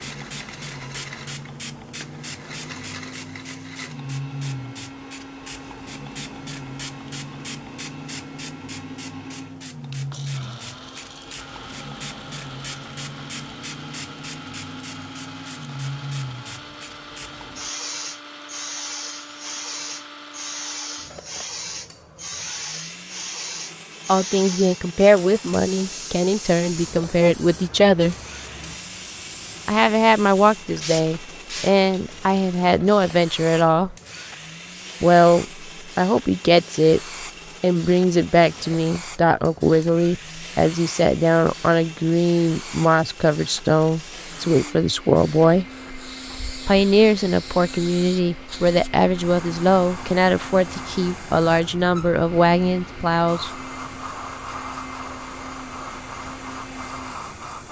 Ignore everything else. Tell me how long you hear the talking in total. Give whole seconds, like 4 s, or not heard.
25 s.